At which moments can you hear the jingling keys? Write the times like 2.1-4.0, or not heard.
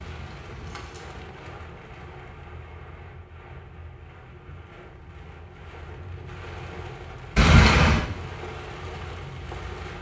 0.0-1.2, 7.3-8.1.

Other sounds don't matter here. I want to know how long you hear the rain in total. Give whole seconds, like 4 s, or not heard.
10 s.